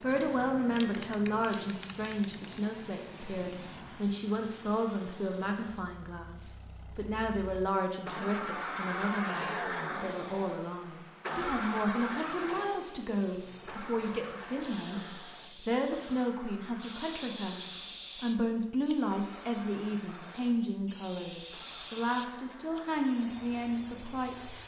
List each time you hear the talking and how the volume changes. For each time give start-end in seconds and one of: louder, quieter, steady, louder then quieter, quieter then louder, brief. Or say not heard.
0.0-24.6 steady.